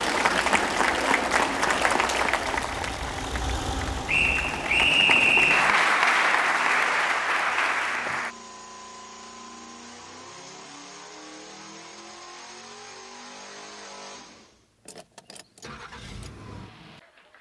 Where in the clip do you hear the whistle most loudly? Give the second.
5 s.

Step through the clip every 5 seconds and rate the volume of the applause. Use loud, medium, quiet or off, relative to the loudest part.
loud, loud, off, off.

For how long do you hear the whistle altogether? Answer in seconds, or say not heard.
2 s.